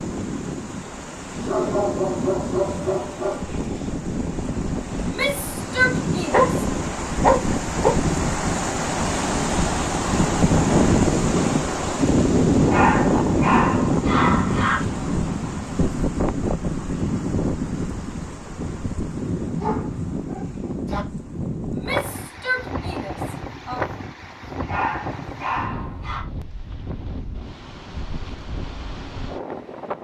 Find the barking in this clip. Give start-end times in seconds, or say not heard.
1.4-3.5, 6.3-8.0, 12.7-14.8, 19.6-21.1, 24.6-26.2.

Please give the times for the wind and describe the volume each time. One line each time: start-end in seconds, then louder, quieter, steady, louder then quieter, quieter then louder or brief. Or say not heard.
0.0-29.9 louder then quieter.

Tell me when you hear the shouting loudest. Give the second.
6 s.